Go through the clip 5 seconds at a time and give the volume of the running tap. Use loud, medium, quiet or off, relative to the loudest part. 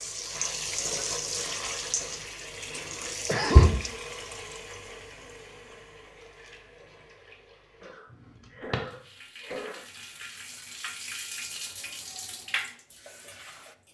loud, quiet, medium.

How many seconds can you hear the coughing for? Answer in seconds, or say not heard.
3 s.